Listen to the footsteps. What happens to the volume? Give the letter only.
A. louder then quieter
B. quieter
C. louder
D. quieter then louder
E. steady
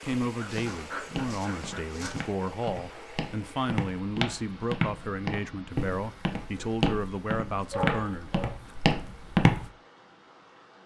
C.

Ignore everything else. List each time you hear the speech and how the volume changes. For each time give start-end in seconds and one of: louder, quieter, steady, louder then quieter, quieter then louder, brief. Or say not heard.
0.0-8.4 steady.